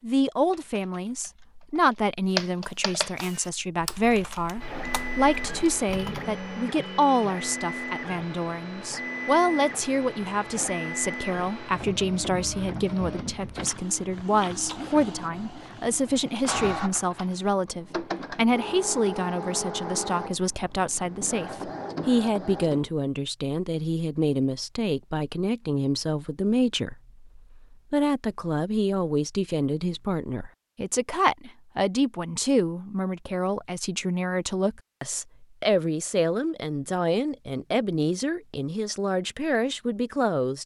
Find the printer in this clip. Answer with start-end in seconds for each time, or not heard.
4.6-22.9.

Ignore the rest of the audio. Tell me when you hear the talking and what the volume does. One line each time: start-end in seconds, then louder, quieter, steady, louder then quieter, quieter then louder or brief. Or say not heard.
0.0-40.6 steady.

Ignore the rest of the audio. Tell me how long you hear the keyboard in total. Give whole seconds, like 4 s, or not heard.
6 s.